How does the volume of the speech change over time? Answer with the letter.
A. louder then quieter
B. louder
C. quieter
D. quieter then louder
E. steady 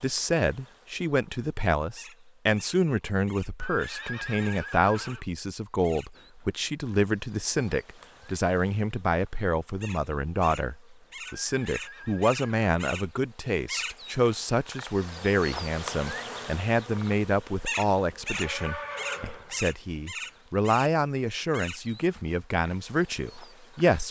E.